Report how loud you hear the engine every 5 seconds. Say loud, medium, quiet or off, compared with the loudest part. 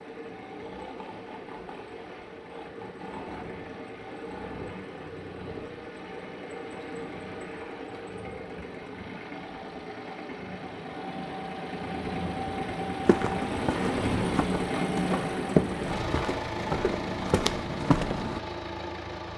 medium, medium, loud, loud.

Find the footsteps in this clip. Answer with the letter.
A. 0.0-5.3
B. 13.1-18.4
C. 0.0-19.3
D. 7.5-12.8
B.